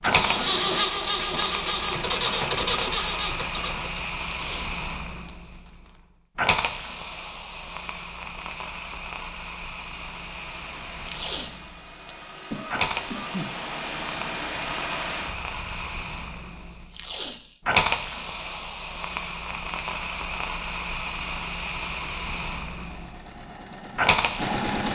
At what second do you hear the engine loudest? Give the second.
1 s.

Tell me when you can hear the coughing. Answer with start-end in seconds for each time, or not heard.
12.5-13.5.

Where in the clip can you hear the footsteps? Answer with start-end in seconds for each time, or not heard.
not heard.